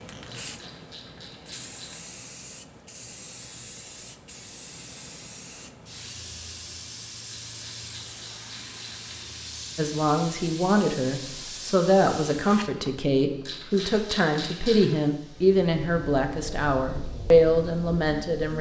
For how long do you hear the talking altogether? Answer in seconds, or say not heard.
9 s.